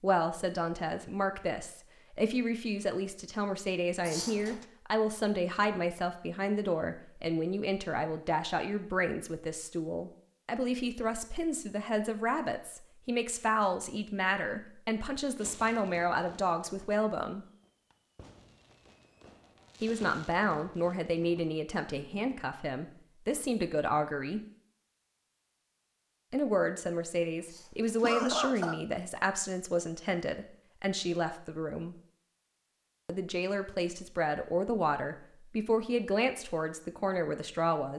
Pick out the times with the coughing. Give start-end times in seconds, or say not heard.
4.0-4.7, 27.4-28.8.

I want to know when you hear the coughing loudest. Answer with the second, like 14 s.
28 s.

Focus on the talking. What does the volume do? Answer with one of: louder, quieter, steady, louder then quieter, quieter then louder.
steady.